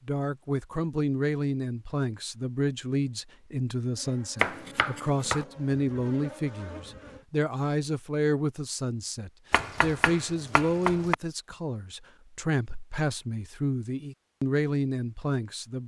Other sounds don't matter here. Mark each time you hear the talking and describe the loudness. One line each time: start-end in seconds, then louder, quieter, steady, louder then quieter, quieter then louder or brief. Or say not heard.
0.1-15.8 steady.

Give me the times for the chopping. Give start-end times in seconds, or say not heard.
4.4-5.5, 9.5-11.2.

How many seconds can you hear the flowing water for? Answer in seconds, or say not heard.
not heard.